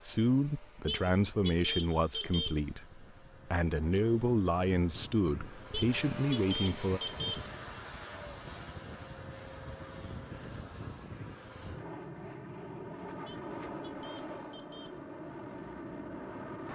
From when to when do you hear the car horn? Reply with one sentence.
You can hear the car horn from 0.8 to 2.6 s, from 5.7 to 7.5 s and from 13.2 to 15.0 s.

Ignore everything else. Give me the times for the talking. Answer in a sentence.
The talking can be heard from 0.0 to 7.0 s.